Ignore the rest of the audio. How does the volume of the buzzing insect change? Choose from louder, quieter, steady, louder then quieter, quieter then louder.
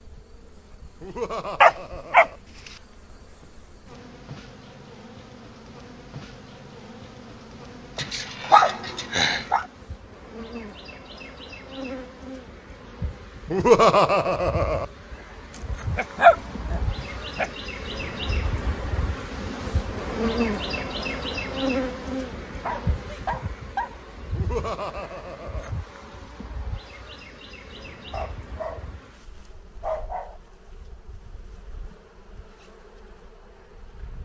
louder then quieter.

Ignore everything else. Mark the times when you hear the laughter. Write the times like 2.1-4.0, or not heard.
1.0-2.4, 13.5-14.8, 24.4-25.7.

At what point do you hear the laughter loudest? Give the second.
14 s.